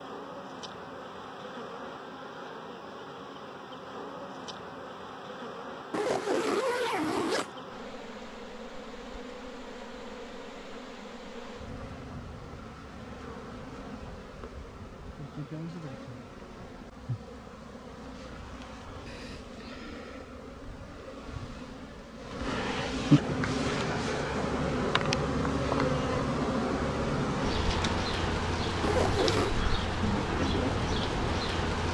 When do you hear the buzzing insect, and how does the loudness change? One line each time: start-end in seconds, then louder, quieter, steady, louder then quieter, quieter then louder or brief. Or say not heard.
0.0-31.8 louder.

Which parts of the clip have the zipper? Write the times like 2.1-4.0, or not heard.
5.9-7.5, 28.8-29.6.